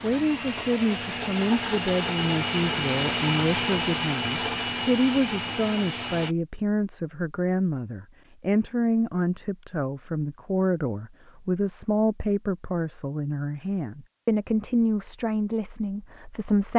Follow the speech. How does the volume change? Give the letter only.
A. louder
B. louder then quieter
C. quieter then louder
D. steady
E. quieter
D.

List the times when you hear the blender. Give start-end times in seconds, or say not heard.
0.0-6.3.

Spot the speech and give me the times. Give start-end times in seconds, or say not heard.
0.0-16.7.